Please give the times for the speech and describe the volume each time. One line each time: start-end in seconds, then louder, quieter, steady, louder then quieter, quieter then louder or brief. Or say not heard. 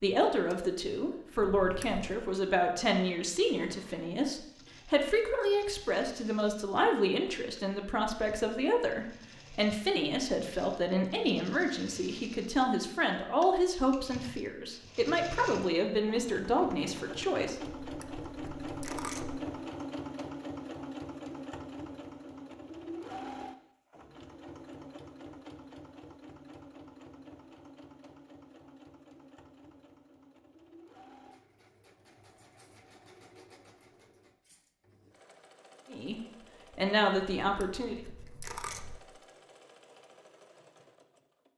0.0-17.6 steady
35.9-38.0 brief.